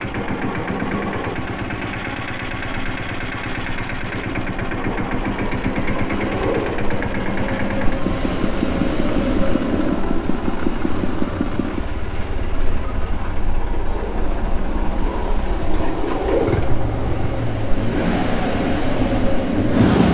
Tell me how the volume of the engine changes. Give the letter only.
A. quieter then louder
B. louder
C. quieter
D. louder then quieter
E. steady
A.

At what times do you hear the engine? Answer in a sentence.
The engine can be heard from 0.0 to 20.1 s.